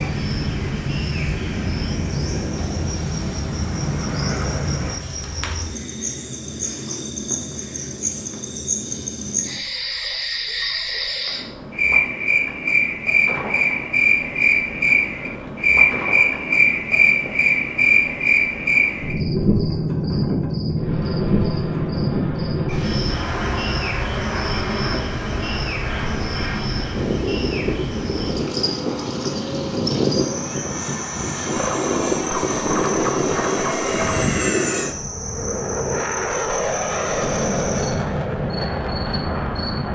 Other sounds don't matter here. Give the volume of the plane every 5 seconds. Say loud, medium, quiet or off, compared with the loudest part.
loud, off, off, off, medium, loud, loud, loud.